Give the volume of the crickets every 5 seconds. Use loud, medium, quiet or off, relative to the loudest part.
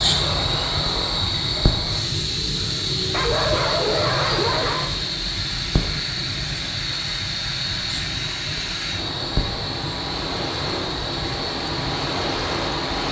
loud, loud, medium.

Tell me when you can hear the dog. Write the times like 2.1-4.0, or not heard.
3.1-5.0.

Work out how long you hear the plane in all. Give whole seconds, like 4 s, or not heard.
not heard.